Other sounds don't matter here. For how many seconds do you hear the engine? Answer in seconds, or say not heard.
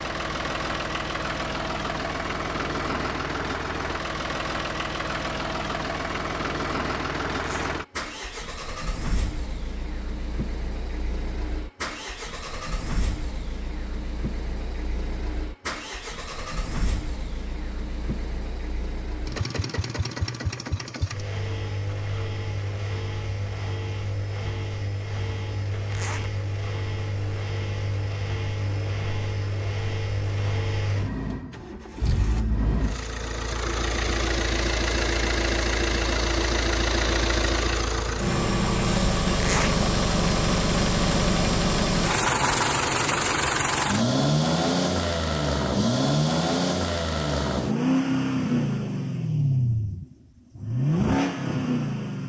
52 s.